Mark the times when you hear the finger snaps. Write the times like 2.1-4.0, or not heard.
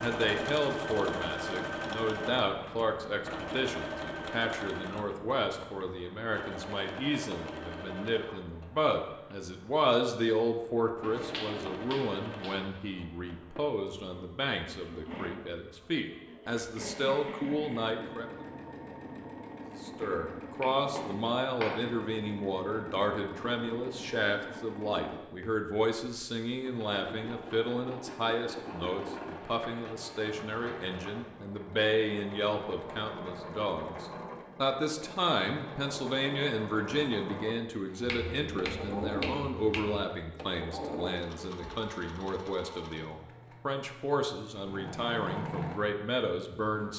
11.0-12.6, 20.0-21.9, 38.0-40.0.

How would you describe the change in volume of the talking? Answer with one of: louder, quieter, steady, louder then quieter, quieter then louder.
steady.